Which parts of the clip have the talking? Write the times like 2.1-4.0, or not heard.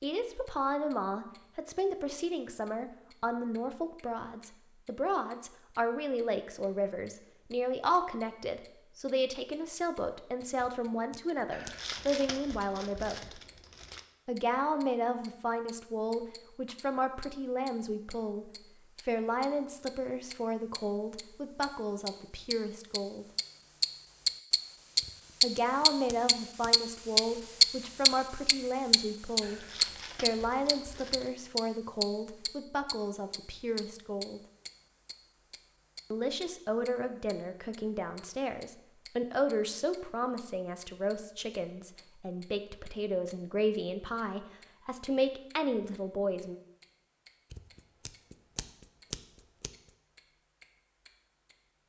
0.0-13.4, 14.2-23.2, 25.4-34.4, 36.1-46.5.